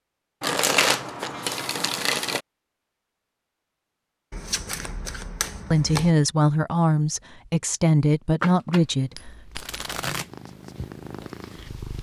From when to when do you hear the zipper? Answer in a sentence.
The zipper can't be heard in this clip.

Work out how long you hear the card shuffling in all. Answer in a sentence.
You can hear the card shuffling for 6 seconds altogether.